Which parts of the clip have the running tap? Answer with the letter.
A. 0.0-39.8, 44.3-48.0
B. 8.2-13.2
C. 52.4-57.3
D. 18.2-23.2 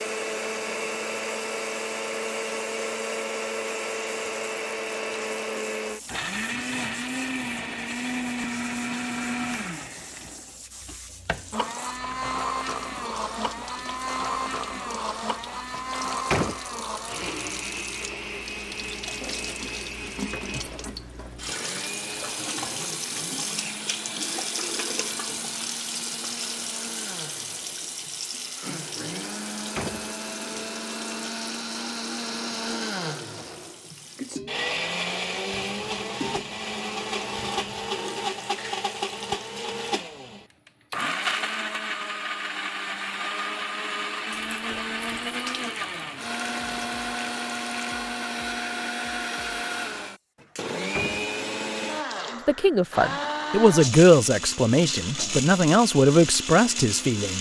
A.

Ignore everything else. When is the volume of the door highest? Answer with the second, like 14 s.
16 s.